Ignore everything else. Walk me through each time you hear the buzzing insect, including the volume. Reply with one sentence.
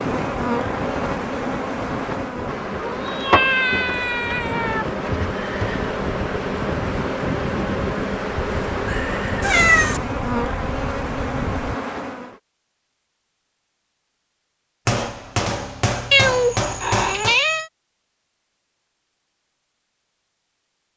You can hear the buzzing insect from 0.0 to 12.4 s, at a steady volume.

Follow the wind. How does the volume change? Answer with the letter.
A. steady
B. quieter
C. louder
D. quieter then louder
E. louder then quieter
A.